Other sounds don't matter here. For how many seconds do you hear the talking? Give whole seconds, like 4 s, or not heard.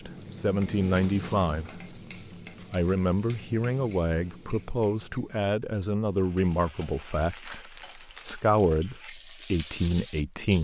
10 s.